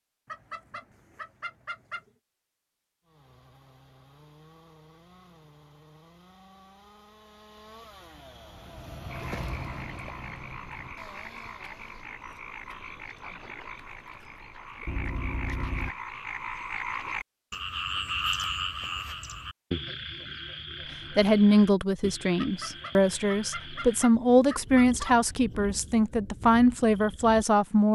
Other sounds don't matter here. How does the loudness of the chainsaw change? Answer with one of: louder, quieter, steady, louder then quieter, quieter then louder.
louder then quieter.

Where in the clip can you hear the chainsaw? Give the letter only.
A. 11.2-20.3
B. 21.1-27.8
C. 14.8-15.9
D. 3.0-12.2
D.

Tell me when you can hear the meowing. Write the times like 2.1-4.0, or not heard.
14.8-15.9.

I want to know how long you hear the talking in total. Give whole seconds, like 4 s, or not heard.
7 s.